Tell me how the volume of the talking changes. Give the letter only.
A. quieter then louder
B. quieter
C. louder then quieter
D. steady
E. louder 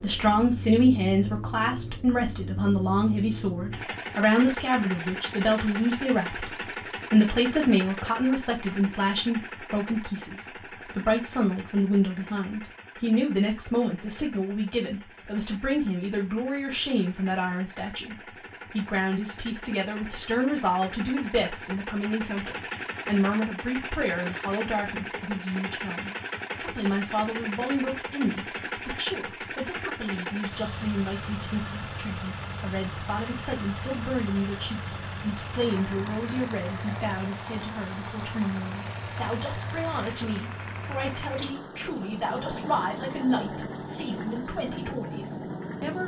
B.